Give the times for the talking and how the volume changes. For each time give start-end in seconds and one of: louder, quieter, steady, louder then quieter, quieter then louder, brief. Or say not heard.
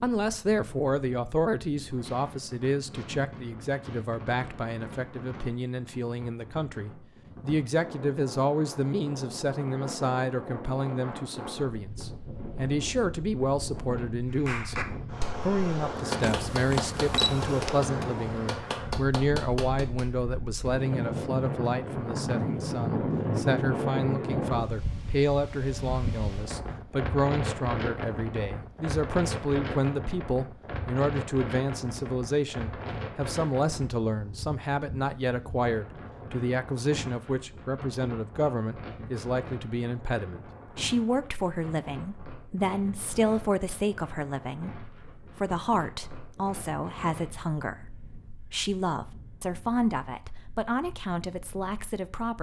0.0-52.3 steady.